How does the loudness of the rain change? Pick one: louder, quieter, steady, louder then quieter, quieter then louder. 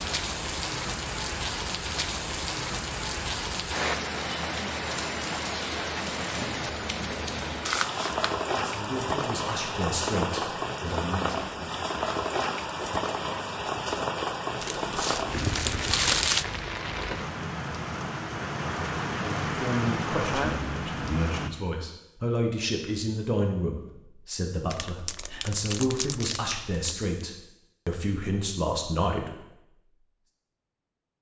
steady.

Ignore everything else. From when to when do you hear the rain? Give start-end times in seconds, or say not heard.
0.0-21.5.